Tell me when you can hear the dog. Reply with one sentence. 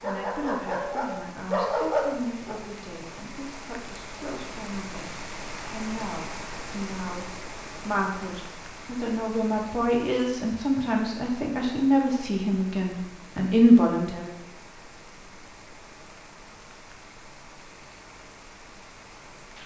You can hear the dog from 0.0 to 2.6 s.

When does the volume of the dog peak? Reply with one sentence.
The volume of the dog peaks at 2 seconds.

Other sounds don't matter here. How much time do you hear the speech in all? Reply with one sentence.
You can hear the speech for 14 seconds altogether.